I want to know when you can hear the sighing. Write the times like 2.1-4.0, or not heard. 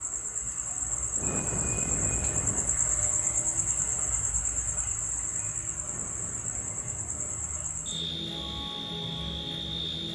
1.1-2.8, 5.8-7.5.